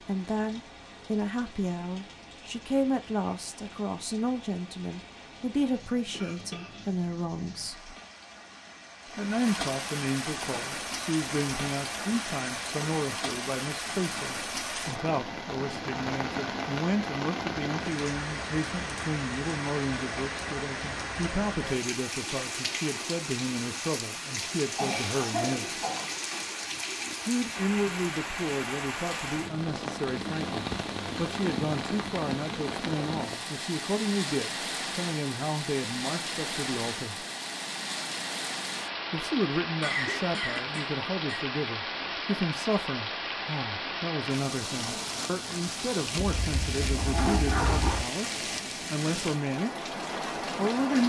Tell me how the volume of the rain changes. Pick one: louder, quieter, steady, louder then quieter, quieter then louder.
louder.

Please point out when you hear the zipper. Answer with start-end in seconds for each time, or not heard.
46.2-48.0.